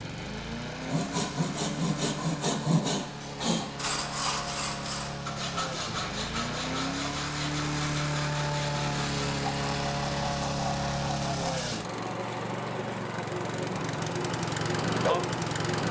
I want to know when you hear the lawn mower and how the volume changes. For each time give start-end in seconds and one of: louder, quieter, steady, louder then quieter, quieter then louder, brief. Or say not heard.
0.0-15.8 louder.